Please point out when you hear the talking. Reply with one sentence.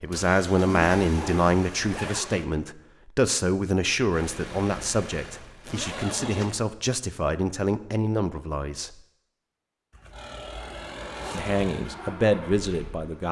The talking can be heard from 0.0 to 8.9 s and from 11.3 to 13.2 s.